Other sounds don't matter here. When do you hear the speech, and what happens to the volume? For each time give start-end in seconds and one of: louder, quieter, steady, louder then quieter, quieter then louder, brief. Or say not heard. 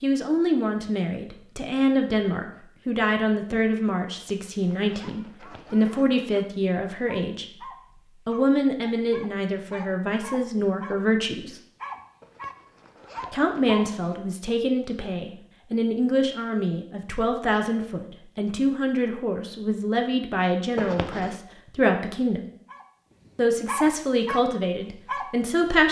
0.0-11.6 steady
13.3-22.4 steady
23.4-25.8 brief.